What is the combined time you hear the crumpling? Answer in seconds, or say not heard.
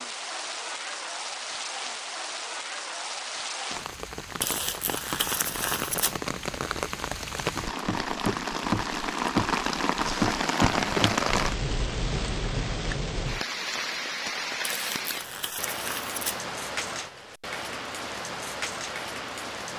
4 s.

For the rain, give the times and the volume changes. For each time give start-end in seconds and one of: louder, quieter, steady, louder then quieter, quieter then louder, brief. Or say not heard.
0.0-19.7 louder then quieter.